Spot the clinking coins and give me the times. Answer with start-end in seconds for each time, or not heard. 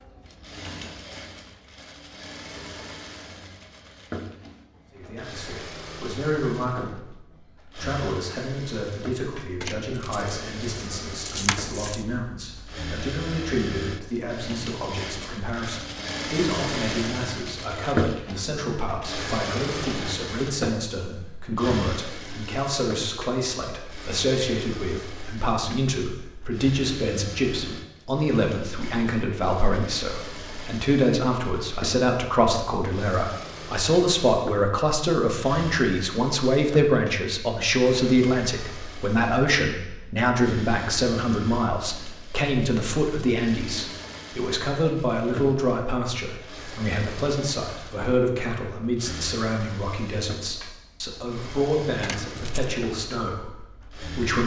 9.6-12.1, 52.0-52.8.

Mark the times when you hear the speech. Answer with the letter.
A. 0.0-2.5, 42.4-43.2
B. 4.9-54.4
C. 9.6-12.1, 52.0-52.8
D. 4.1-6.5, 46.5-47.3
B.